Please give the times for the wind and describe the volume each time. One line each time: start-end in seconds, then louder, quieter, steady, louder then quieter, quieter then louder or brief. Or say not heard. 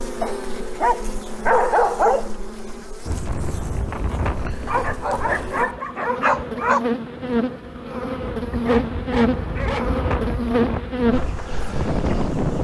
3.0-12.5 quieter then louder.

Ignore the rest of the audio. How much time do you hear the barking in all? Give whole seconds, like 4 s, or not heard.
6 s.